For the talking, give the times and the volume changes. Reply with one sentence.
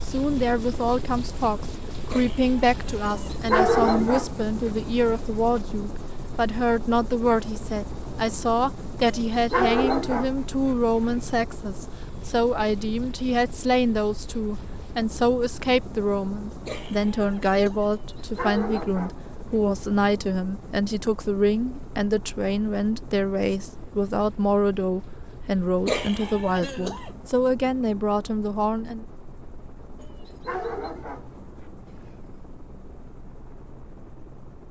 You can hear the talking from 0.0 to 29.1 s, at a steady volume.